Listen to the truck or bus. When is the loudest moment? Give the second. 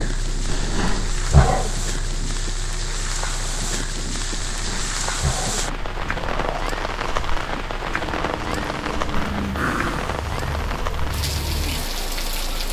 9 s.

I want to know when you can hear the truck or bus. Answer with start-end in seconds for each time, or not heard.
0.0-12.6.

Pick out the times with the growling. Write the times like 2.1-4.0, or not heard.
0.5-1.7, 4.3-6.6, 9.2-10.2.